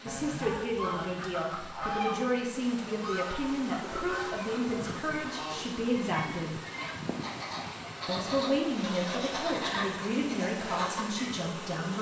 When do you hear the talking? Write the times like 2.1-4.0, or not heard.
0.0-6.6, 8.1-11.9.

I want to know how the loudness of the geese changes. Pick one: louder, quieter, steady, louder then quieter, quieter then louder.
quieter then louder.